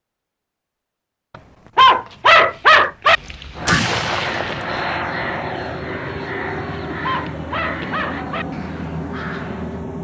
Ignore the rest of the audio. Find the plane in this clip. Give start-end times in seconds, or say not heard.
3.5-9.9.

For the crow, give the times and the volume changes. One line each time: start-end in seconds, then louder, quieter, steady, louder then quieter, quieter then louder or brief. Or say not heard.
3.1-9.8 quieter.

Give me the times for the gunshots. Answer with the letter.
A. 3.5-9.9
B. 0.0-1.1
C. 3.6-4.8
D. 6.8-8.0
C.